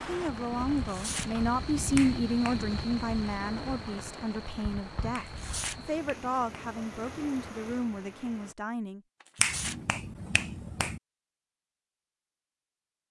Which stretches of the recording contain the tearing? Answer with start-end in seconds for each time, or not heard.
0.7-1.3, 5.2-5.8, 9.2-9.8.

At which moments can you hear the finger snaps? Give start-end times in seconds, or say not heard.
1.9-2.6, 5.1-6.8, 9.3-11.0.